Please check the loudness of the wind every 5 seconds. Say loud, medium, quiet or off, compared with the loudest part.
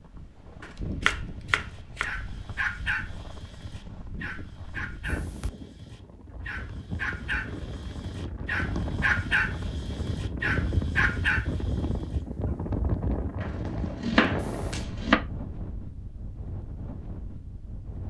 medium, medium, loud, medium.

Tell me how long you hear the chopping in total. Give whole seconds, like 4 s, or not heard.
3 s.